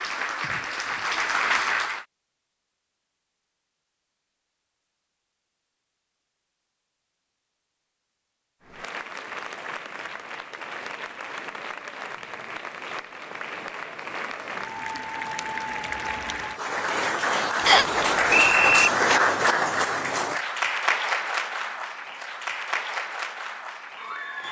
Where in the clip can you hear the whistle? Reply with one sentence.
You can hear the whistle from 17.6 to 18.9 s.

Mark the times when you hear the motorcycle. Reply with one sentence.
The motorcycle can't be heard in this clip.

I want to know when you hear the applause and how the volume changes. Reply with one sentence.
You can hear the applause briefly from 0.0 to 2.0 s; and from 8.6 to 24.4 s, getting louder then quieter.